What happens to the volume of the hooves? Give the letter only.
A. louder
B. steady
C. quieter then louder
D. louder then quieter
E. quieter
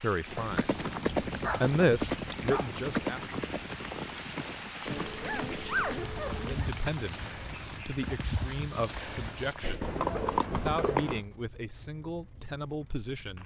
C.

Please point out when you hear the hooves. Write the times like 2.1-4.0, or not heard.
0.2-11.2.